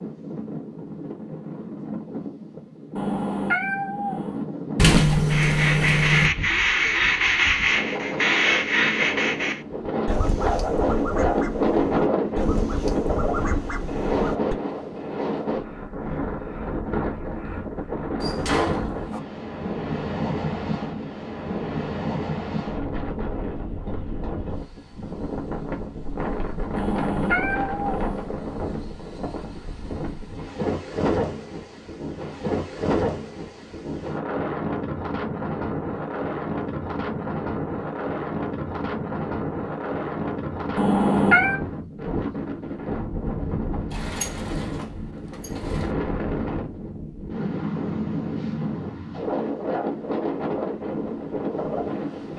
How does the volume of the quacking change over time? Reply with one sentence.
The loudness of the quacking goes down.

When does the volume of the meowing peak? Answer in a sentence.
The volume of the meowing peaks at 41 seconds.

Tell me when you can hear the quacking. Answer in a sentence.
You can hear the quacking from 5.3 to 14.6 s.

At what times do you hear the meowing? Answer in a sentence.
You can hear the meowing from 3.0 to 4.5 s, from 26.8 to 28.3 s and from 40.8 to 41.6 s.